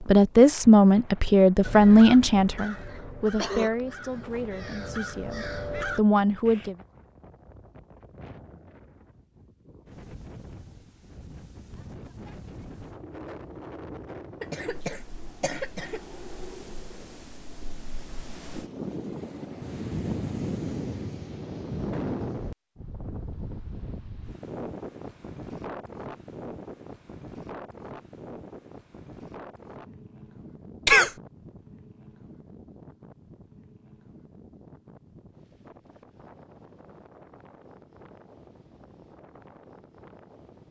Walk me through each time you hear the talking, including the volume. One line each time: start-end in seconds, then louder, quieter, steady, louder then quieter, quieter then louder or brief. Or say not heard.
0.0-6.8 quieter then louder.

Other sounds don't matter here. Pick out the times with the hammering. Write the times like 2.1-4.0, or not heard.
not heard.